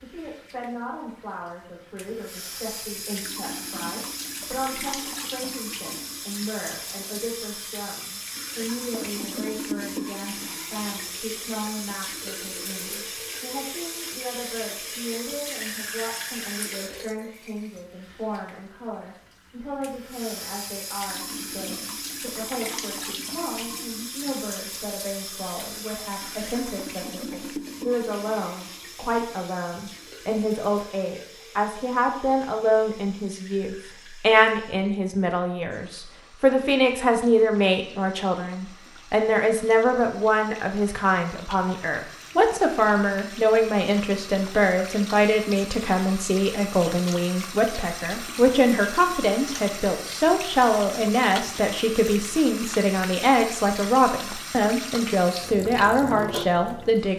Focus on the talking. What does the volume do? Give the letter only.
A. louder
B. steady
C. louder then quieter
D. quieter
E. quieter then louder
A.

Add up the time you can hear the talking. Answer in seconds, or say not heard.
57 s.